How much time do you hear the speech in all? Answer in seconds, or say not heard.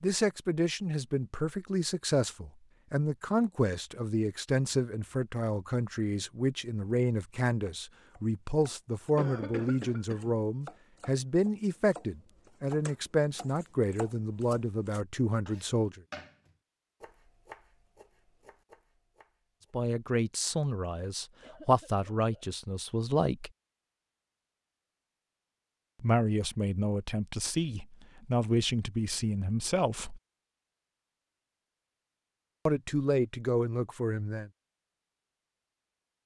26 s.